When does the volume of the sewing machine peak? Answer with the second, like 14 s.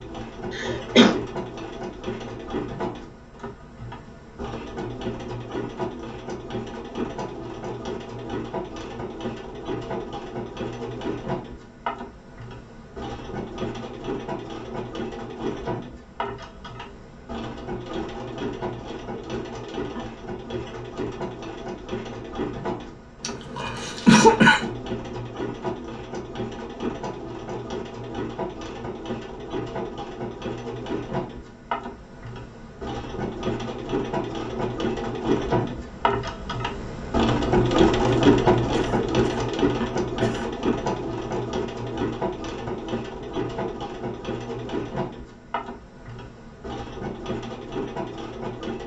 38 s.